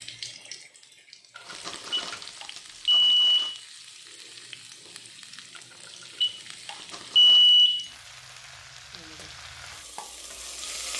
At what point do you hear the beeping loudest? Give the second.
7 s.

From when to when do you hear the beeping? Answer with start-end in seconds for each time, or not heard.
1.9-3.6, 6.2-7.8.